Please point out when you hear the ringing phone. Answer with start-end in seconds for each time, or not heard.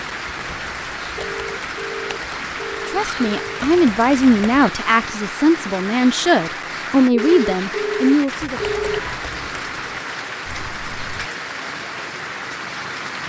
1.1-3.6, 7.1-9.1.